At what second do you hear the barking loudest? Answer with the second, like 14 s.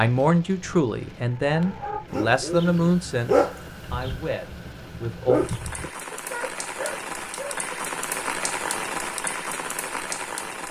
3 s.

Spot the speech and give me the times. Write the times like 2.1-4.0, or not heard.
0.0-5.4.